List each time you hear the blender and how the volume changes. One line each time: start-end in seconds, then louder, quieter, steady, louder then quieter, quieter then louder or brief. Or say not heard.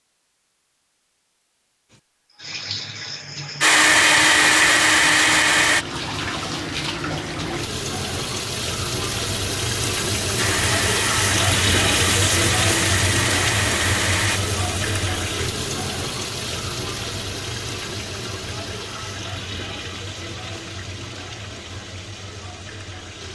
3.6-5.8 brief
10.3-14.4 steady.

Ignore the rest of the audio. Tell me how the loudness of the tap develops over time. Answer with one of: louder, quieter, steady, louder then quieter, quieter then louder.
louder then quieter.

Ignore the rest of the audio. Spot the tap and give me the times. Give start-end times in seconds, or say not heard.
1.9-23.3.